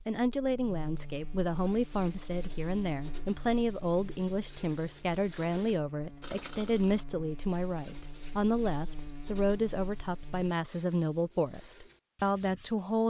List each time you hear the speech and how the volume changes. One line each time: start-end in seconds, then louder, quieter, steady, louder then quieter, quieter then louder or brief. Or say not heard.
0.1-13.0 steady.